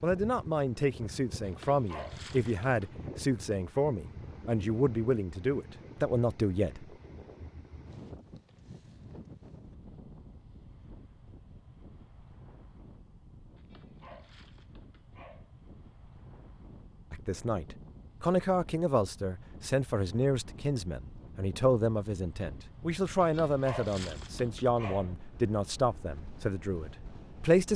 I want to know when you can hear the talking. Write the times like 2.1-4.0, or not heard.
0.0-6.8, 17.1-27.7.